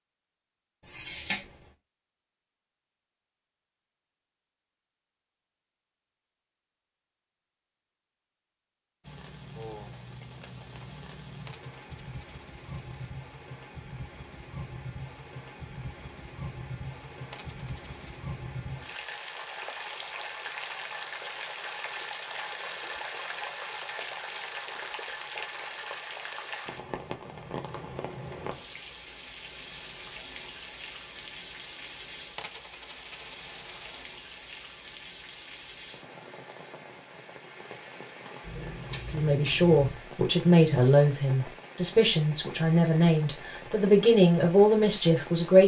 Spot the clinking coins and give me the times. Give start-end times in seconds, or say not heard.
11.4-13.2, 17.3-18.2, 32.4-34.0.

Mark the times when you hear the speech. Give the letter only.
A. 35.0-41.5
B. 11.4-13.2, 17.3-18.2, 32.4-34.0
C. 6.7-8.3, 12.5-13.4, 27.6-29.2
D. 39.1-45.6
D.